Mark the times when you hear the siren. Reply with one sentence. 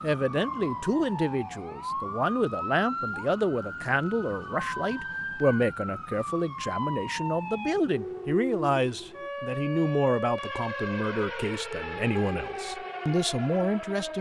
The siren can be heard from 0.0 to 14.1 s.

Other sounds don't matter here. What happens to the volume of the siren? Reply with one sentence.
The loudness of the siren stays about the same.